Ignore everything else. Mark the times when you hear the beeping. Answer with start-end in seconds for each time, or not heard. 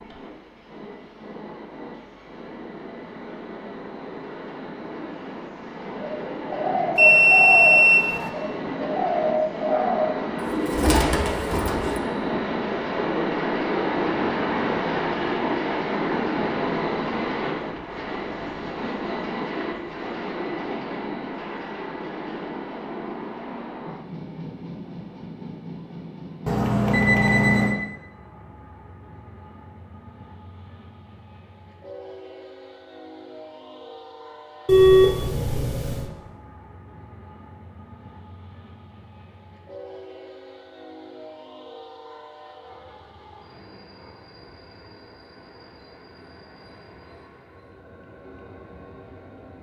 7.0-8.3, 26.4-27.8, 34.6-36.0.